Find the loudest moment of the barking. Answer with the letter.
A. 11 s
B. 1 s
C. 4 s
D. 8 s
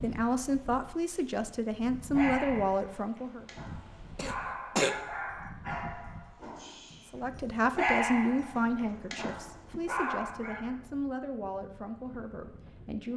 D.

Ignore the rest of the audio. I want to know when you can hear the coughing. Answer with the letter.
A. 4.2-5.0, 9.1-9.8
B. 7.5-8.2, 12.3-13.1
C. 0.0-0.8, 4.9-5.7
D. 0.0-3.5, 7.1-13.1
A.